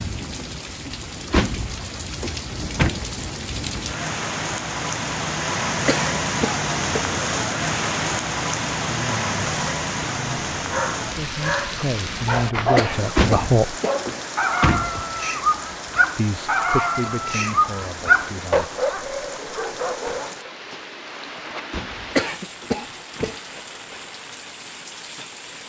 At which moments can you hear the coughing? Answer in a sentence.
You can hear the coughing from 5.8 to 7.0 s, from 12.8 to 14.0 s and from 22.1 to 23.6 s.